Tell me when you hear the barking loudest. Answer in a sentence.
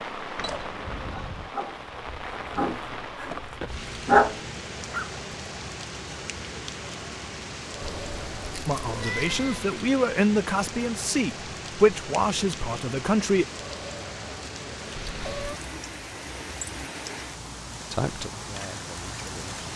The loudest moment of the barking is at 4 seconds.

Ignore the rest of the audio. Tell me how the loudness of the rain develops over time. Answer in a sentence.
The volume of the rain stays about the same.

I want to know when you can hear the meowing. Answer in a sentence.
The meowing can be heard from 0.3 to 1.5 s, from 7.8 to 9.7 s and from 15.1 to 15.6 s.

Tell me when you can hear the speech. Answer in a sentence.
You can hear the speech from 8.7 to 13.4 s and from 17.9 to 19.5 s.